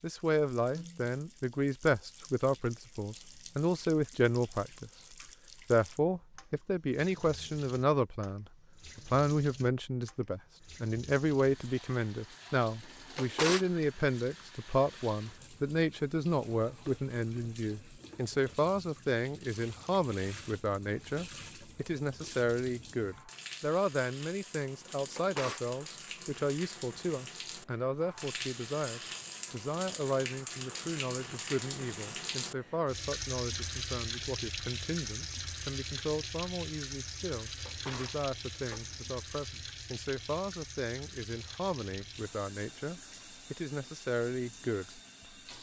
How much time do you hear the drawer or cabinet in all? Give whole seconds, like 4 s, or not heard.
3 s.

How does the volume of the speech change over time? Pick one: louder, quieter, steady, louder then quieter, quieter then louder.
quieter.